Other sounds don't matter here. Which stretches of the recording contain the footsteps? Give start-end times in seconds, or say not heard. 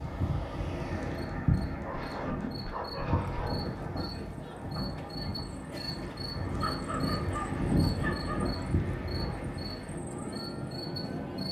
not heard.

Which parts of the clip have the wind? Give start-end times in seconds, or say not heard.
0.0-11.4.